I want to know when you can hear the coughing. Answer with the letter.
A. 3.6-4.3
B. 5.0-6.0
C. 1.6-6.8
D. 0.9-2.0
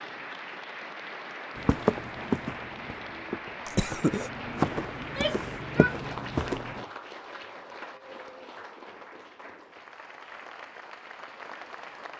A.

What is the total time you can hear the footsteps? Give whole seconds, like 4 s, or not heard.
5 s.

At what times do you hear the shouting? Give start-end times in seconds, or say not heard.
5.0-6.0.